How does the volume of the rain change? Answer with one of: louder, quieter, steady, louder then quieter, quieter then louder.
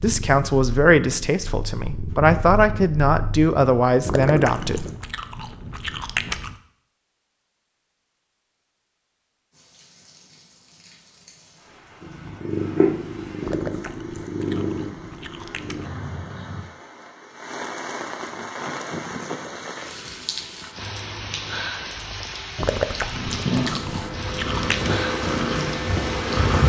louder.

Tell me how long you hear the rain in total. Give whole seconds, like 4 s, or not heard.
17 s.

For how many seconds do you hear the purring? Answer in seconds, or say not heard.
13 s.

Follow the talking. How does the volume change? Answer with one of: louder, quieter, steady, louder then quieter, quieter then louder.
quieter then louder.